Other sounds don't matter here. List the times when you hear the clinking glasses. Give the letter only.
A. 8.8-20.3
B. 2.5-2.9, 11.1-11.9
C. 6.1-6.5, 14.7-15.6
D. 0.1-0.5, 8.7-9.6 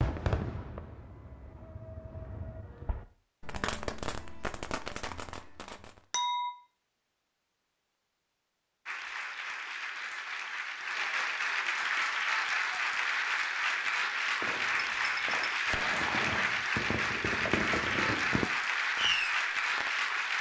C.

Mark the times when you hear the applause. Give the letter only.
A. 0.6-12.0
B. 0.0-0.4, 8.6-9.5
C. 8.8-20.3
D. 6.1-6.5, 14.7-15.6
C.